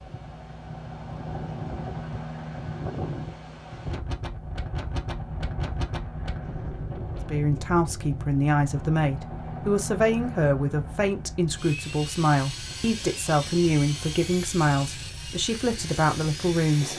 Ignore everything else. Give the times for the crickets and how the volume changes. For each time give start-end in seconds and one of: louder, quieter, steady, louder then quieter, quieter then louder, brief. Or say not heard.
not heard.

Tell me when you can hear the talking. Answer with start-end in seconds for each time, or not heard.
7.2-16.9.